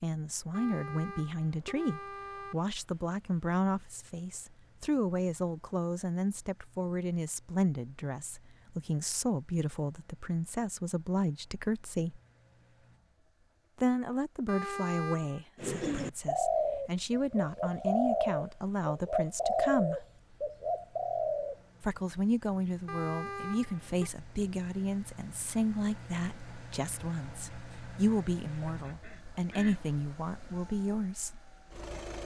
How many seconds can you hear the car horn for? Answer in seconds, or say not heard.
4 s.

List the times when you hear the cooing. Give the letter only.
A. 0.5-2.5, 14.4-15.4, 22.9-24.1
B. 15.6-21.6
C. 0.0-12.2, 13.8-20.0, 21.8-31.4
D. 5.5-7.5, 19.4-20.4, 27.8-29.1
B.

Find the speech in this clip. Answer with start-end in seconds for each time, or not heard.
0.0-12.2, 13.8-20.0, 21.8-31.4.